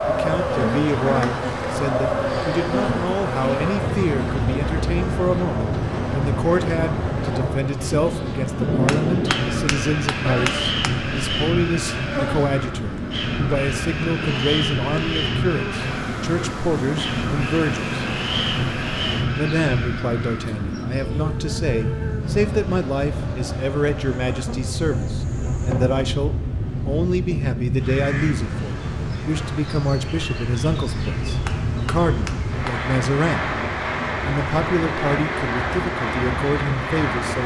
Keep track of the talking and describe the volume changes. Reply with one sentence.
The volume of the talking stays about the same.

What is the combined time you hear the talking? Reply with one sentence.
The talking can be heard for 35 seconds in total.